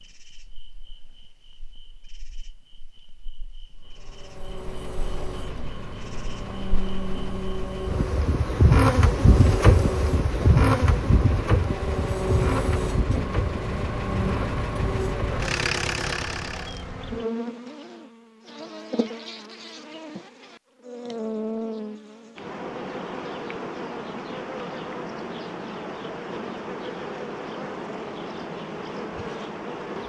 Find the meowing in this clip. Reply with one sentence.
You can't hear the meowing here.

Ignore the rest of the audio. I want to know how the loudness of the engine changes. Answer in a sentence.
The volume of the engine goes up.